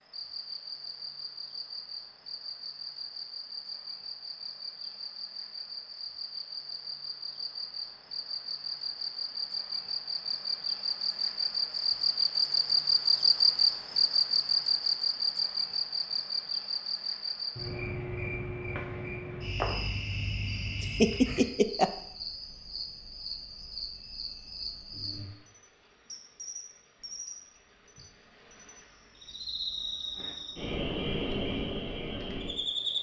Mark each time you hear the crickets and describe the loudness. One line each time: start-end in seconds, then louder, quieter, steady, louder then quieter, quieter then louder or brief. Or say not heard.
0.1-32.9 louder then quieter.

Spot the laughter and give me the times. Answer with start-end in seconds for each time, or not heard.
20.8-21.9.